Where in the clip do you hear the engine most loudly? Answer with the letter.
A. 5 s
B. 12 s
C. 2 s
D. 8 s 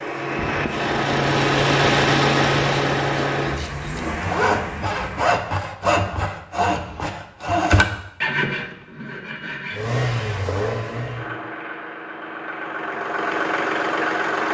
C.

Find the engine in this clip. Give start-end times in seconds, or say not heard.
0.0-5.4, 9.7-14.4.